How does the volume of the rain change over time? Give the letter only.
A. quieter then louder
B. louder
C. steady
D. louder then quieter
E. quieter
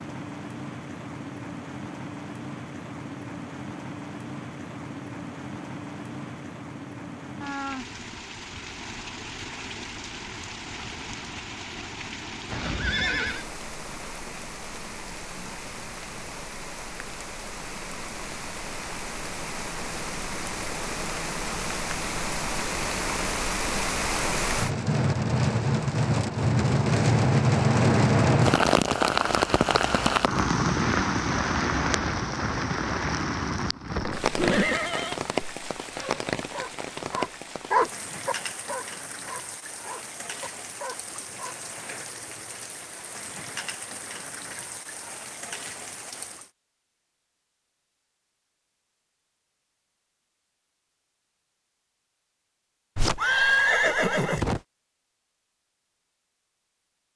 D.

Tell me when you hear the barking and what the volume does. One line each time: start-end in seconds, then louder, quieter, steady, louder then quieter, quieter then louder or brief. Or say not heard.
35.9-41.5 louder then quieter.